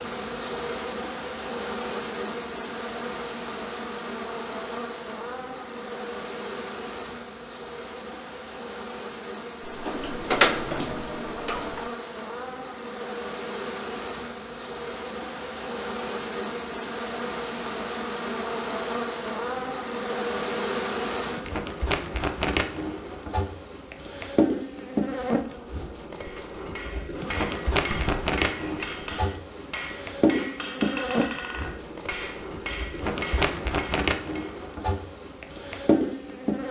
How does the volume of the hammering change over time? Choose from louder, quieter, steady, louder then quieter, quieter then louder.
steady.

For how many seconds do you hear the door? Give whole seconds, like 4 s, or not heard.
2 s.